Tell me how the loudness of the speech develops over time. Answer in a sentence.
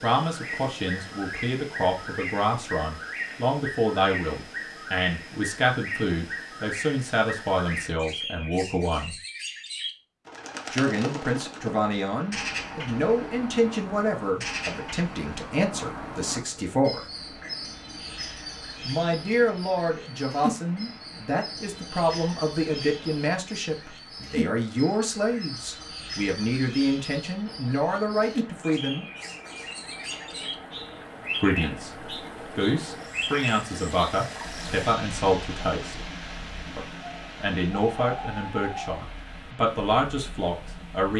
The volume of the speech stays about the same.